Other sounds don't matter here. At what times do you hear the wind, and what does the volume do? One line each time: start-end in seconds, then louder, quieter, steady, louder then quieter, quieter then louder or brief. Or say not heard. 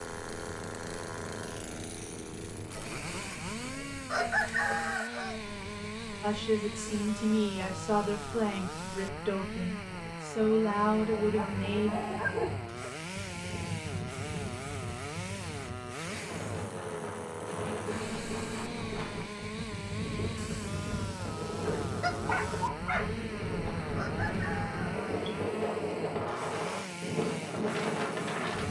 0.0-28.6 louder.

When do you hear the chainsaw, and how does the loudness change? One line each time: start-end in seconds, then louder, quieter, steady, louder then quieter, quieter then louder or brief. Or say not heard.
0.0-28.6 steady.